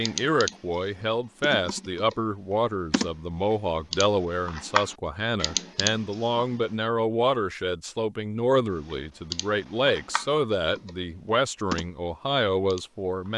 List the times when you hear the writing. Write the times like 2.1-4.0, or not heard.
not heard.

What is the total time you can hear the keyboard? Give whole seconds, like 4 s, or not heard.
9 s.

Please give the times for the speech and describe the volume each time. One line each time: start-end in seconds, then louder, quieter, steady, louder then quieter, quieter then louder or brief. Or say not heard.
0.0-13.3 steady.